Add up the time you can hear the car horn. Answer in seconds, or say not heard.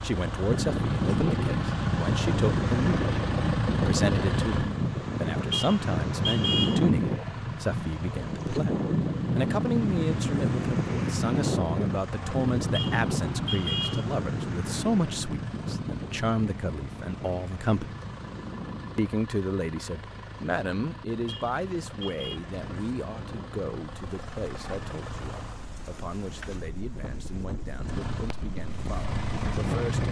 4 s.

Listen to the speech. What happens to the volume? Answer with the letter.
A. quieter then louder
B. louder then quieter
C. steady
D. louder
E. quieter
E.